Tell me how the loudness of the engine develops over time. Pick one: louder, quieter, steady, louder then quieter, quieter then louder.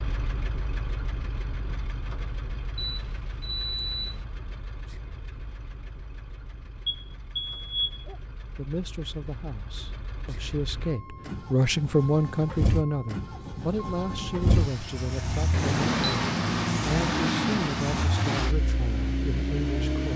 quieter then louder.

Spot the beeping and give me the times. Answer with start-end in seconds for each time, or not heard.
2.8-4.2, 6.8-8.2, 15.5-16.2.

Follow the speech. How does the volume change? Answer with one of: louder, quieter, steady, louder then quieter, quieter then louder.
louder then quieter.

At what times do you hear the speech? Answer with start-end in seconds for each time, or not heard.
8.6-20.1.